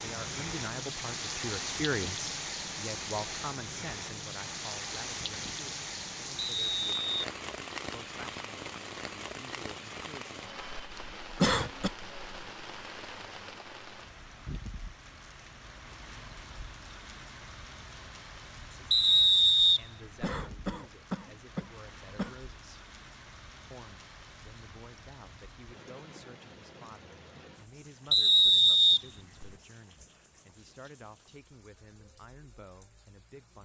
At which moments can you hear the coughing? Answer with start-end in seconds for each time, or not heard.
11.4-11.9, 20.2-22.4.